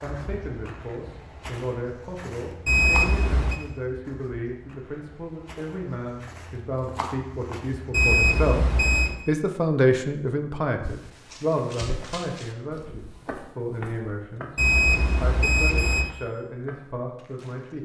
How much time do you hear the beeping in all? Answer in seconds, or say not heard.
4 s.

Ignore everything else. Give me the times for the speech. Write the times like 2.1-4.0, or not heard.
0.0-8.7, 9.2-14.6, 15.2-17.8.